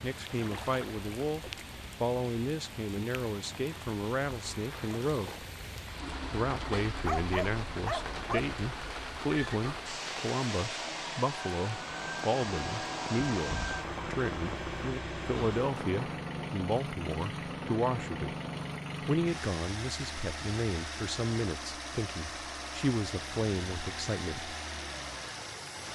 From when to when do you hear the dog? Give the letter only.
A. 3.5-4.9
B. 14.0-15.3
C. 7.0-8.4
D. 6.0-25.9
C.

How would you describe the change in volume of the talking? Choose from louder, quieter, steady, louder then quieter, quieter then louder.
steady.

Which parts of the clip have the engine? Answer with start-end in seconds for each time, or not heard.
6.0-25.9.